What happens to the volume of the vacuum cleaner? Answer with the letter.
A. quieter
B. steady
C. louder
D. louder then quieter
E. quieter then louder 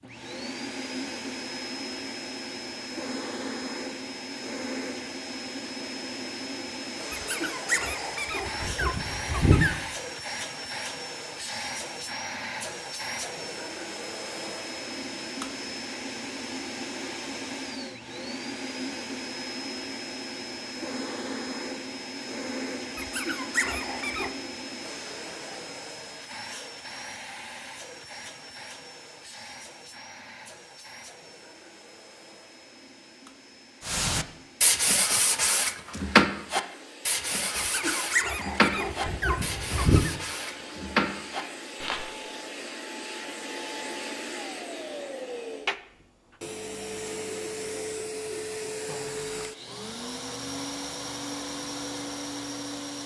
E.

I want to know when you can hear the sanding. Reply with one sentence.
The sanding can be heard from 33.9 to 42.1 s.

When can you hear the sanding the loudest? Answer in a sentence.
The volume of the sanding peaks at 36 seconds.